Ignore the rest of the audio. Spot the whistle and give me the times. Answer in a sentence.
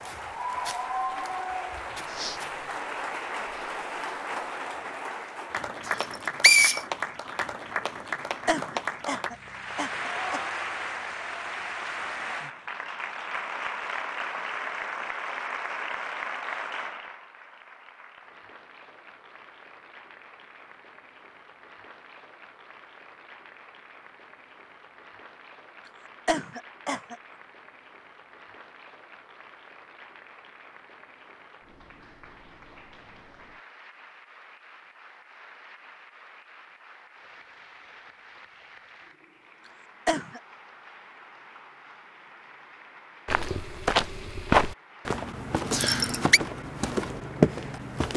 The whistle can be heard from 5.9 to 6.8 s and from 45.7 to 46.4 s.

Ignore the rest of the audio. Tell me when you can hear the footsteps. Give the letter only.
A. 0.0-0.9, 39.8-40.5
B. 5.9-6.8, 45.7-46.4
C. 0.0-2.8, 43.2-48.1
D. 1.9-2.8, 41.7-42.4
C.